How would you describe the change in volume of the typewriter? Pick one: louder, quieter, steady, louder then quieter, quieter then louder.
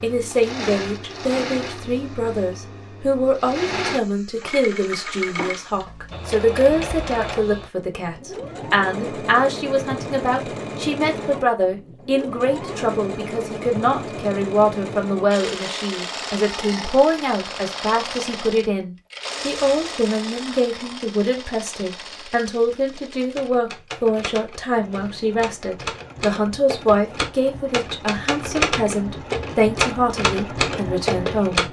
louder.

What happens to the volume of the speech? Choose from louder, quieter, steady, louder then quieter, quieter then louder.
steady.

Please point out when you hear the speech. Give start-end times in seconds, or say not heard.
0.0-31.6.